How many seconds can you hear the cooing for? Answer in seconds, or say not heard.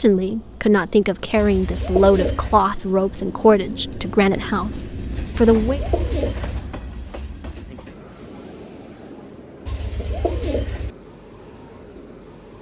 4 s.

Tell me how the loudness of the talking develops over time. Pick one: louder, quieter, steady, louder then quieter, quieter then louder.
quieter.